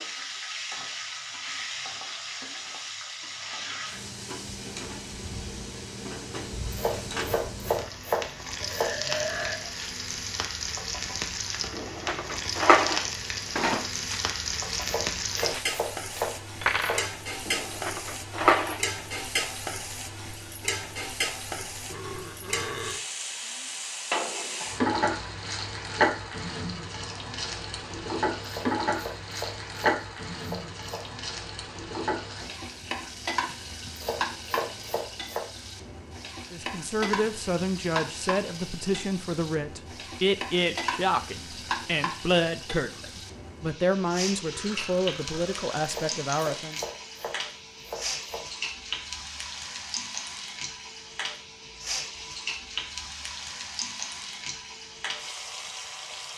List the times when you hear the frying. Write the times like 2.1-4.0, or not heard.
0.0-56.3.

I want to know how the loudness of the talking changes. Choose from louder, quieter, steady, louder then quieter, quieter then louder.
steady.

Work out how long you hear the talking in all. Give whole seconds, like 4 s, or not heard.
10 s.